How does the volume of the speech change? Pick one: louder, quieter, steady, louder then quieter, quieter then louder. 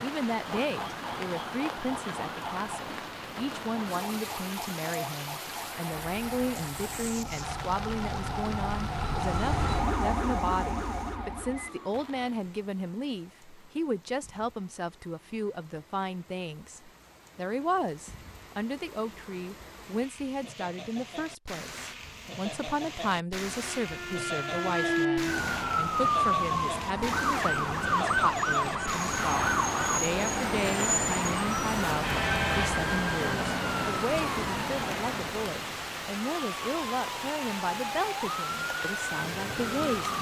steady.